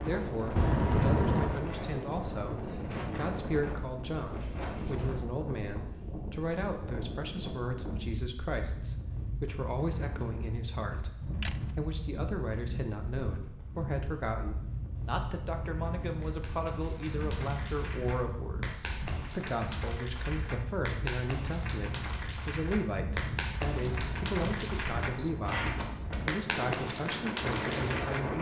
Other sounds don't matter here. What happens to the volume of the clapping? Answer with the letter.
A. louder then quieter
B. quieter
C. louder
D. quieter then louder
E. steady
C.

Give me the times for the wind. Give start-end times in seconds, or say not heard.
0.0-28.3.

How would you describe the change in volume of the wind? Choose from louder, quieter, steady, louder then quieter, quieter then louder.
steady.